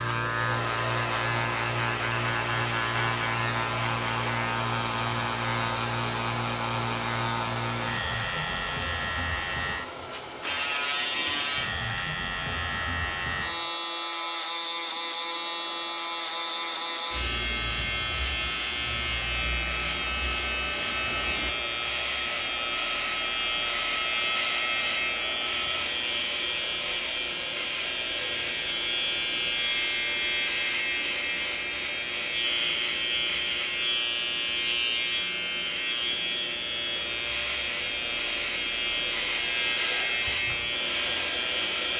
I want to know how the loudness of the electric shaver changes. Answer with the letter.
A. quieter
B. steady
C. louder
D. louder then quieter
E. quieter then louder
B.